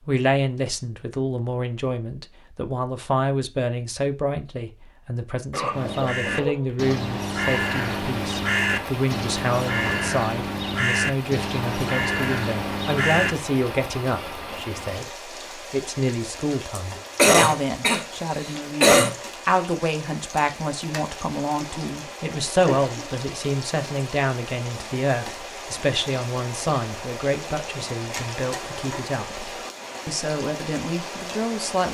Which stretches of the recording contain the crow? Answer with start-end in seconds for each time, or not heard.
5.7-13.3.